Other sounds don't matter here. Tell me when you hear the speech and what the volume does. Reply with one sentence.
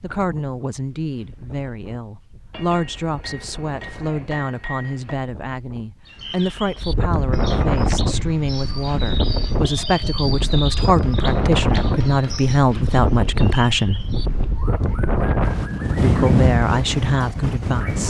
You can hear the speech from 0.0 to 14.1 s, getting louder; and briefly from 16.0 to 18.0 s.